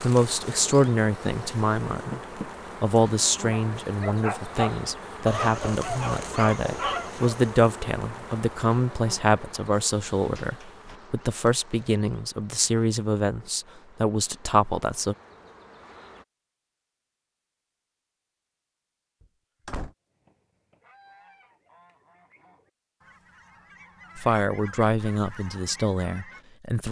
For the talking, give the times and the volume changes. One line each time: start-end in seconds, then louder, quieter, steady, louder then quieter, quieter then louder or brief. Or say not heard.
0.0-2.2 brief
2.8-15.2 steady
24.1-26.8 brief.